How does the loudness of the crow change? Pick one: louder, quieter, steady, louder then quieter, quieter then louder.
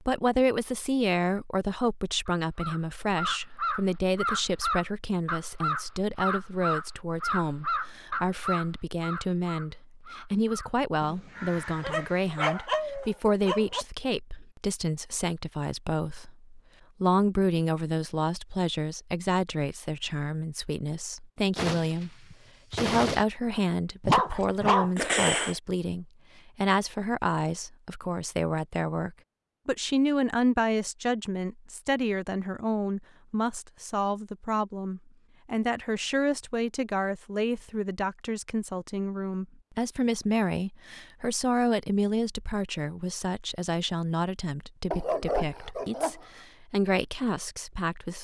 quieter.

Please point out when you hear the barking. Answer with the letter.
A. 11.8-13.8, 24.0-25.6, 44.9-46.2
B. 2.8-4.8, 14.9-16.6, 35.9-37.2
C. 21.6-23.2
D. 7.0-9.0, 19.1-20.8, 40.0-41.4
A.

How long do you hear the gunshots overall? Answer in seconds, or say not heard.
2 s.